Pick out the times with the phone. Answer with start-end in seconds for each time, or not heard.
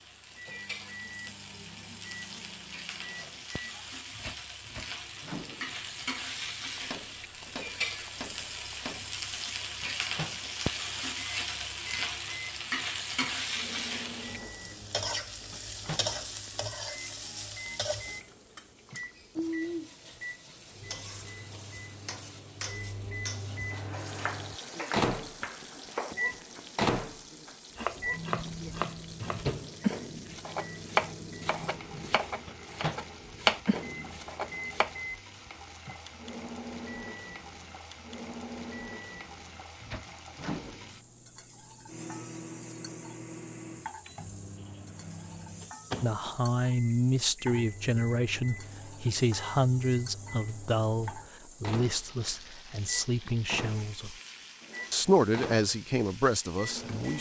not heard.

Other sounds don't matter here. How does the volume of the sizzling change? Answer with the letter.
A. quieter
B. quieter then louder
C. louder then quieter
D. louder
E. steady
A.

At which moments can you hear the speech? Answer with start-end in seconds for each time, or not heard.
46.0-54.1, 54.9-57.1.